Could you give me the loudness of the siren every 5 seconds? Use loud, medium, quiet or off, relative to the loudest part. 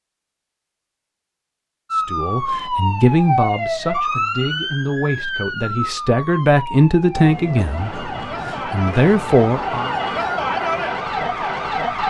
loud, medium, loud.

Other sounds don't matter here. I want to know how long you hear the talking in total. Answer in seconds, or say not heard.
8 s.